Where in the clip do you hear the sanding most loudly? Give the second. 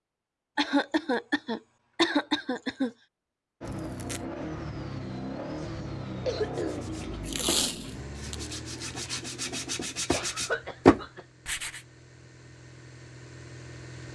11 s.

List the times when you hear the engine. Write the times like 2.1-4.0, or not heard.
3.6-14.0.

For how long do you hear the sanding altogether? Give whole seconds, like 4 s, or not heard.
5 s.